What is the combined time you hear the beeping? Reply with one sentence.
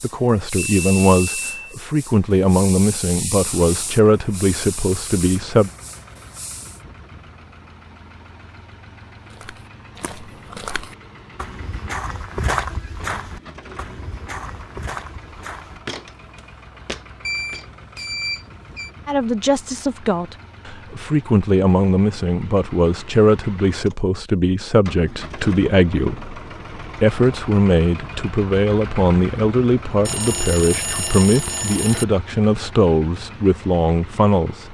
You can hear the beeping for 5 seconds altogether.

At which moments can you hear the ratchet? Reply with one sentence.
You can't hear the ratchet here.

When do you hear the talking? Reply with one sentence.
You can hear the talking from 0.0 to 5.7 s and from 19.1 to 34.6 s.